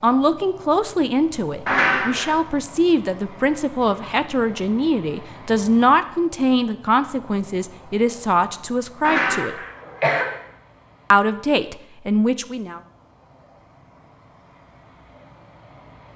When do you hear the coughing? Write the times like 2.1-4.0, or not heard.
1.6-2.4, 9.0-10.2.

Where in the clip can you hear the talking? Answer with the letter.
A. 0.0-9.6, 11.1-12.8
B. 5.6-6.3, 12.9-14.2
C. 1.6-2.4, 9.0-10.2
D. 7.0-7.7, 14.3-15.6
A.